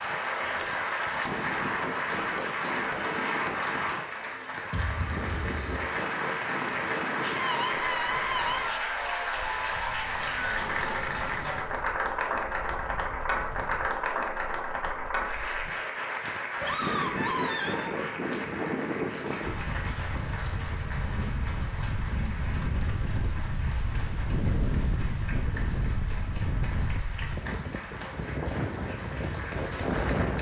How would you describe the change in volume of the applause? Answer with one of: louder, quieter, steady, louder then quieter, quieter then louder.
quieter.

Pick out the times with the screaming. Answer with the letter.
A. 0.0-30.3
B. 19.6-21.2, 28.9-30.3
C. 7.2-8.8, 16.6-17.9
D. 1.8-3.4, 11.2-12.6
C.